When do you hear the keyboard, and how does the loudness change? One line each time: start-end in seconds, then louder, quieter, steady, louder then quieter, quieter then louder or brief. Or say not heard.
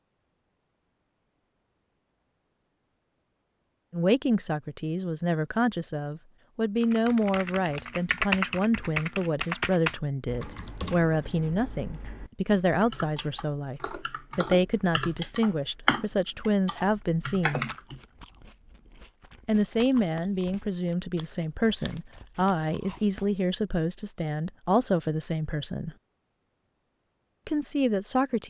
6.8-18.0 quieter then louder.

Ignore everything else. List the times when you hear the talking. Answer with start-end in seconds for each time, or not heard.
3.9-17.6, 19.4-25.9, 27.4-28.4.